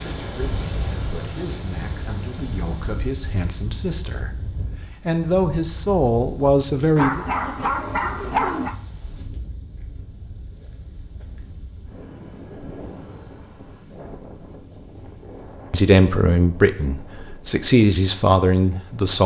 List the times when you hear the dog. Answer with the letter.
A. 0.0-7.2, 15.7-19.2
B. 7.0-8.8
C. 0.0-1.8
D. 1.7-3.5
B.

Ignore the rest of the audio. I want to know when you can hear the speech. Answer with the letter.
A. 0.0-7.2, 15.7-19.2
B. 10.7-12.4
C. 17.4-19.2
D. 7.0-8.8
A.